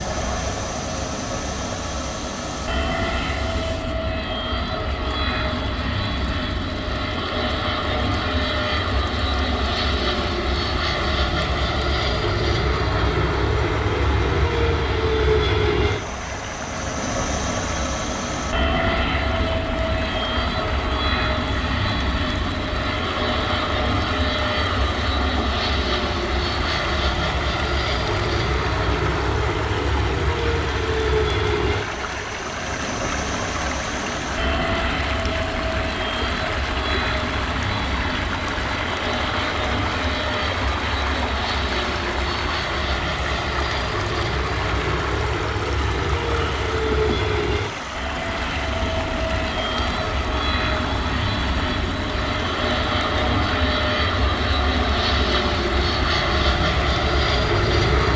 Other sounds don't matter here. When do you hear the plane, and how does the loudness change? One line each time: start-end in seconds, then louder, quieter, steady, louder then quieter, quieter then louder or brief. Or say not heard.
0.0-58.1 steady.